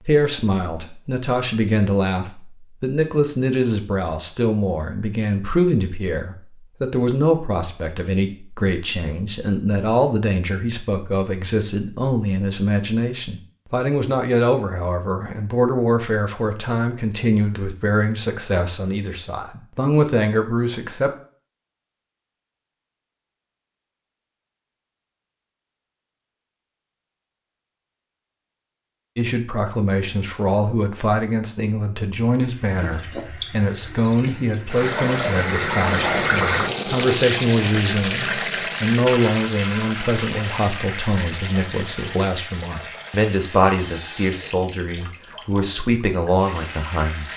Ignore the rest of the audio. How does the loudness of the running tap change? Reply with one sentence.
The loudness of the running tap goes up, then down.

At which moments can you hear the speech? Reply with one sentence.
You can hear the speech from 0.0 to 21.1 s and from 29.1 to 47.3 s.